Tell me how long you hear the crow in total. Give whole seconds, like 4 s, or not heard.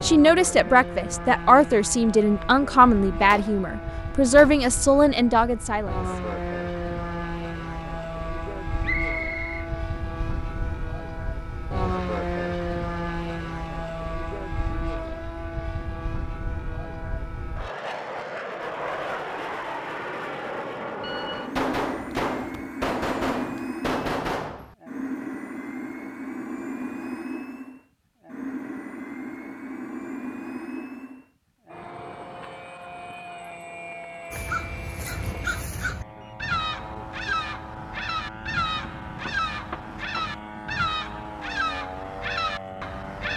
9 s.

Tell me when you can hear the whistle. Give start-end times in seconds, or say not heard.
8.8-9.7.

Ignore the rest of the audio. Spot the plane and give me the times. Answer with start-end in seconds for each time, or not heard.
0.0-43.3.